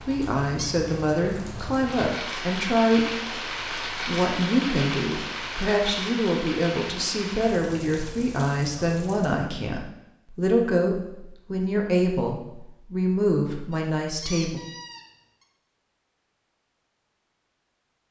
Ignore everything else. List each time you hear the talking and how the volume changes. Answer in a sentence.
The talking can be heard from 0.1 to 14.6 s, at a steady volume.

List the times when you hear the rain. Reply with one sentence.
The rain can be heard from 0.0 to 9.5 s.